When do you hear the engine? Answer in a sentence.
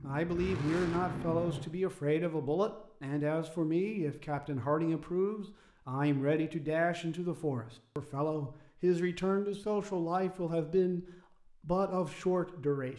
You can hear the engine from 0.0 to 1.6 s.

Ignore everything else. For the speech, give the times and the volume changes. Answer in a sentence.
You can hear the speech from 0.0 to 12.9 s, at a steady volume.